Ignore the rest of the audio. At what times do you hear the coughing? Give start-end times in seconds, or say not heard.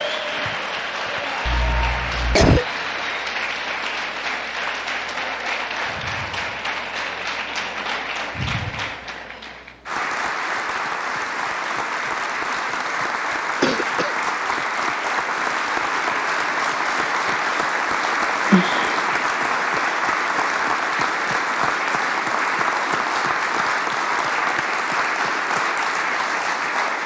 1.4-2.6, 13.6-14.2, 18.5-19.2.